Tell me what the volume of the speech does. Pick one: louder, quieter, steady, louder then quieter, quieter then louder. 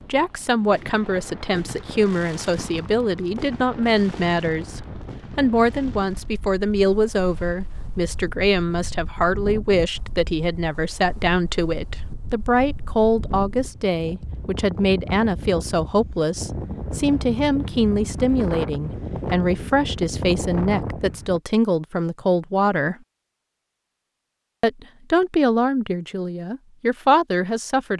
steady.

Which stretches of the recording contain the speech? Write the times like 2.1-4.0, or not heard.
0.1-22.9, 24.6-27.9.